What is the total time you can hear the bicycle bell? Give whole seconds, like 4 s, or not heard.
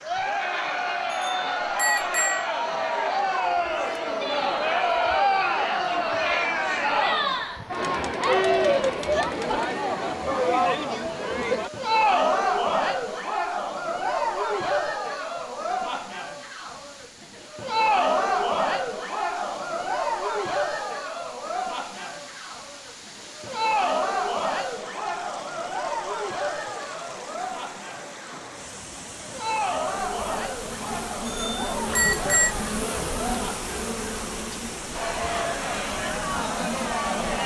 3 s.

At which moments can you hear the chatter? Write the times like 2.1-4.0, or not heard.
0.0-37.4.